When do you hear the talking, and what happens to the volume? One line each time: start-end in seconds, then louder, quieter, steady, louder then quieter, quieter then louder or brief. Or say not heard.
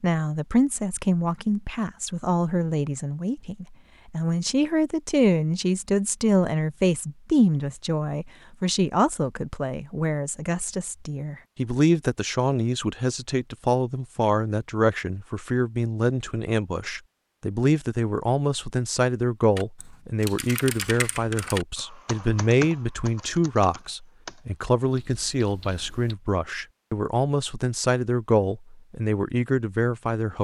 0.0-30.4 steady.